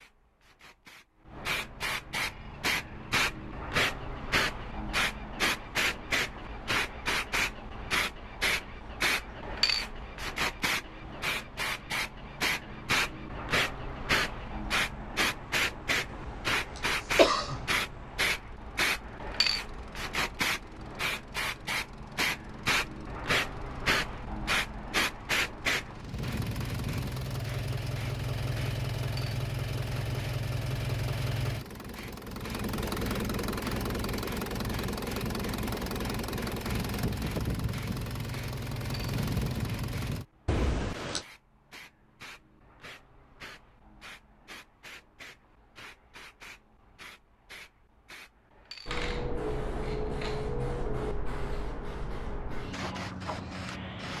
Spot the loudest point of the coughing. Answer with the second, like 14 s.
17 s.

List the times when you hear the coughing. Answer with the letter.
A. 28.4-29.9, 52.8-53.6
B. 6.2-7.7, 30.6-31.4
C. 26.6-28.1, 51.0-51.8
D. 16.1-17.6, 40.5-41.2
D.